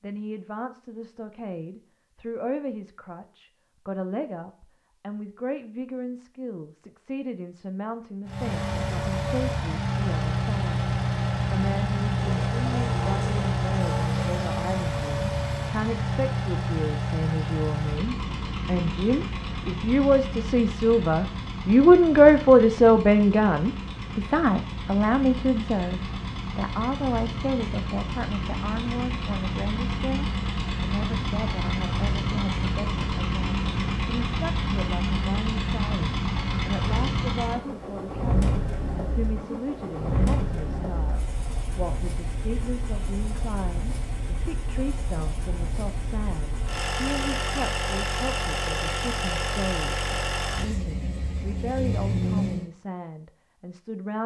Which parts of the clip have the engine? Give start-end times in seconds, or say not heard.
8.2-52.7.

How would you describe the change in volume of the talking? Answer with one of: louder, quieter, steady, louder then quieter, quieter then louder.
louder then quieter.